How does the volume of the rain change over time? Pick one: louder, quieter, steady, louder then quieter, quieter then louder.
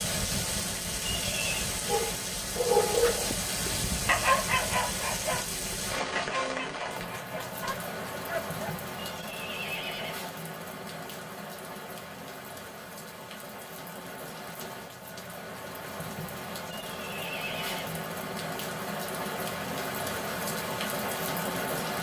quieter then louder.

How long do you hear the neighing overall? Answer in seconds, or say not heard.
3 s.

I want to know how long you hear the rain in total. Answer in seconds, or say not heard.
22 s.